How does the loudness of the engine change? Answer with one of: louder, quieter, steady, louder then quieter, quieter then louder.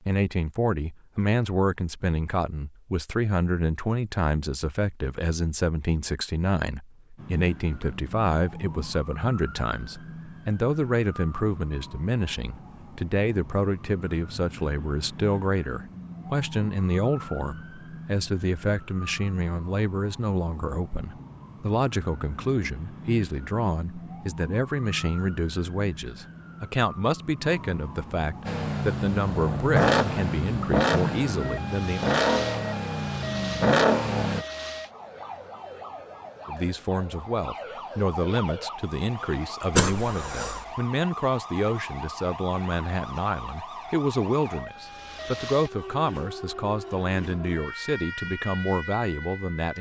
quieter then louder.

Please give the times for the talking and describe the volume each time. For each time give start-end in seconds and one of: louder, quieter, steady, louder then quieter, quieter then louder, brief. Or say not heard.
0.1-32.0 steady
36.5-49.7 steady.